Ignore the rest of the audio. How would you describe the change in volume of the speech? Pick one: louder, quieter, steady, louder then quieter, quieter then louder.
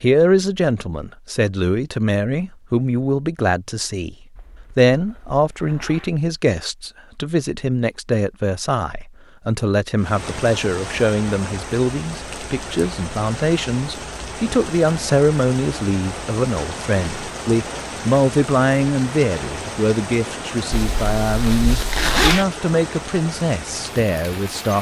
steady.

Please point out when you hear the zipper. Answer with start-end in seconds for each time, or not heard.
4.3-6.1, 20.7-22.4.